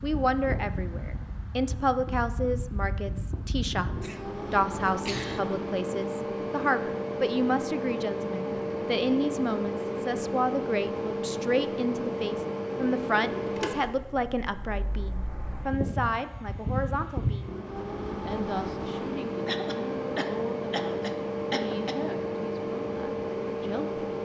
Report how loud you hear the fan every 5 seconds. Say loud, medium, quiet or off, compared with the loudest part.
medium, loud, loud, loud, loud.